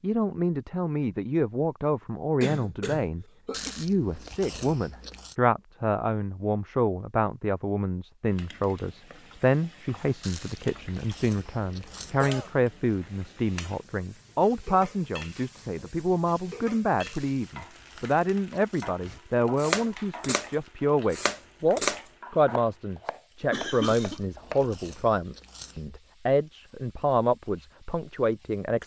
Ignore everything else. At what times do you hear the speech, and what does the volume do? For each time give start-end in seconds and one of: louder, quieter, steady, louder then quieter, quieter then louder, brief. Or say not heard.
0.0-28.8 steady.